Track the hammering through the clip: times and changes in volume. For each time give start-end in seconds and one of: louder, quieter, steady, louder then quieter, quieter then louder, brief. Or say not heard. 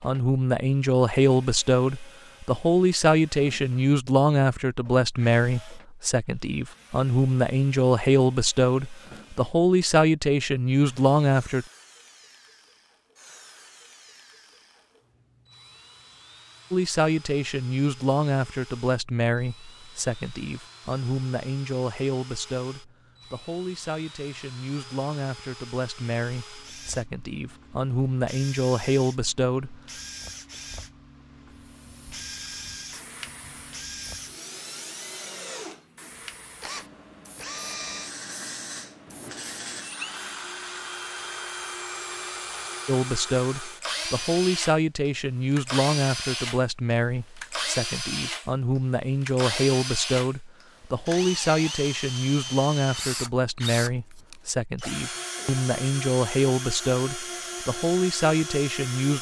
not heard.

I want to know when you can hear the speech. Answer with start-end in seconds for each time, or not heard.
0.0-11.7, 16.7-29.8, 42.9-59.1.